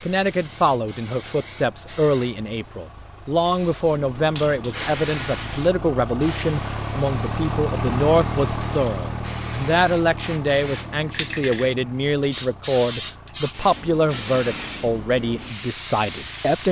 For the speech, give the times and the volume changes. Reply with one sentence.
You can hear the speech from 0.0 to 16.6 s, at a steady volume.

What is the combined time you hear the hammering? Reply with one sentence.
The hammering can't be heard in this clip.